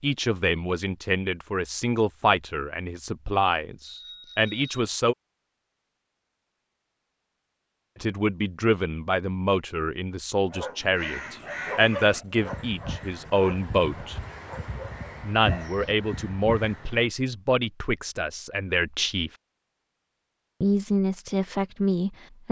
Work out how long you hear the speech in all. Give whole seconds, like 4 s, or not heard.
17 s.